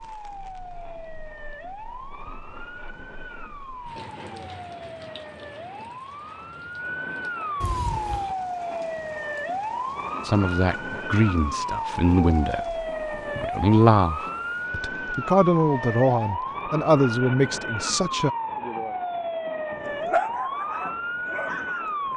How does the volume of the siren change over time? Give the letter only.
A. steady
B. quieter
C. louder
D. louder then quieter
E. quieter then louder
C.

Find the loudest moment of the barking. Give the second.
20 s.